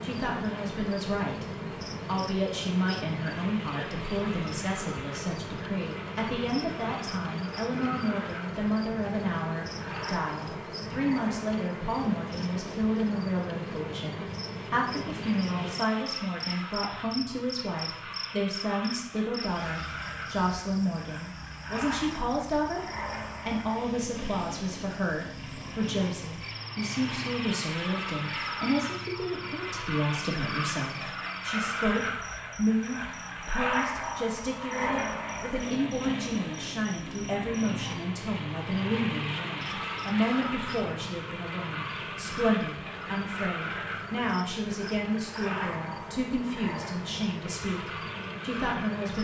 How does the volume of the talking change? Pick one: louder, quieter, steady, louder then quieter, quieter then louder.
steady.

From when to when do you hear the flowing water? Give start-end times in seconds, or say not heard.
not heard.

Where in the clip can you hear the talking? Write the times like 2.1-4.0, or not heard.
0.0-49.2.